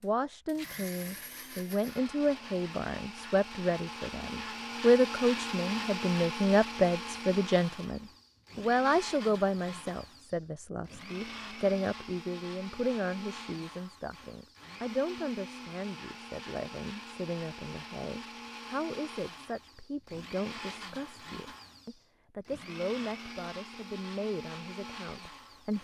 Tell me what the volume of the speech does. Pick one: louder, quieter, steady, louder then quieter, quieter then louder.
quieter.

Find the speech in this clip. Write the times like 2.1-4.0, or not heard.
0.0-25.7.